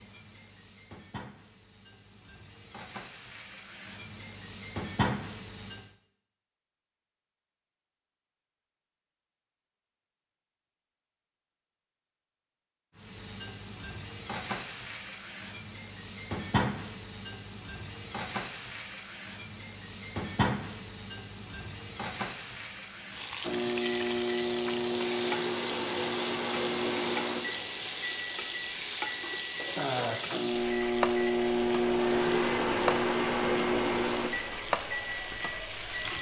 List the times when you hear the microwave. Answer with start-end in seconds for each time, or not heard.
23.4-36.1.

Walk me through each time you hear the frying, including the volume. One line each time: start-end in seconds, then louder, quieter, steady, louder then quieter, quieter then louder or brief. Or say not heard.
0.0-6.0 quieter then louder
12.9-36.1 steady.